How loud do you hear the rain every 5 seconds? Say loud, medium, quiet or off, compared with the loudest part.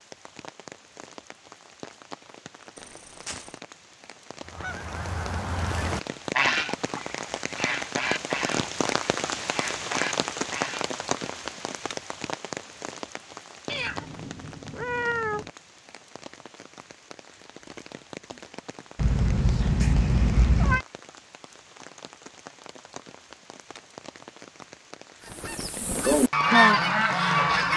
quiet, loud, loud, quiet, quiet, medium.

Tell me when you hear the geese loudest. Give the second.
27 s.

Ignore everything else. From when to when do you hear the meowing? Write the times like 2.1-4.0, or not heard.
2.8-3.5, 13.7-15.5, 18.9-20.9.